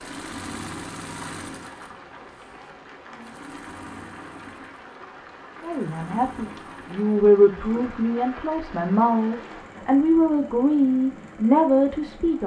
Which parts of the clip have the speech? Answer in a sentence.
You can hear the speech from 5.6 to 12.4 s.